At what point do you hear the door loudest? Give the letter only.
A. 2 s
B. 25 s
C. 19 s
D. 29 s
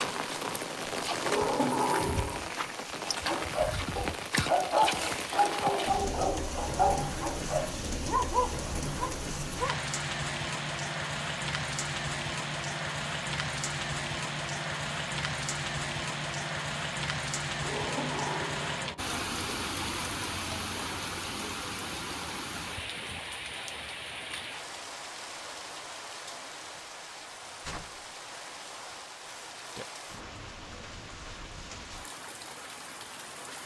A.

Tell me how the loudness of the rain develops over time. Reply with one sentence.
The loudness of the rain goes down.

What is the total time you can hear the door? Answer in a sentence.
The door can be heard for 3 seconds in total.